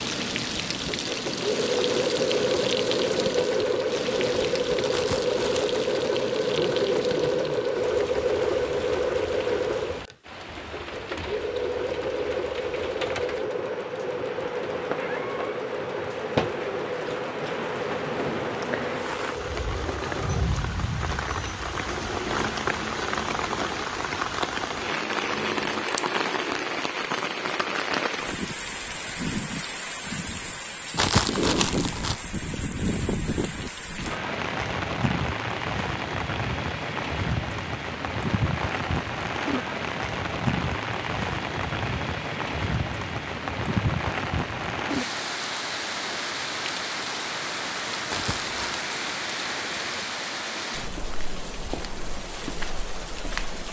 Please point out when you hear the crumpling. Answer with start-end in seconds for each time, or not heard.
4.9-5.8, 30.9-32.2, 48.1-48.9.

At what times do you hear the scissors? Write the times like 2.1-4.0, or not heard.
25.8-26.2.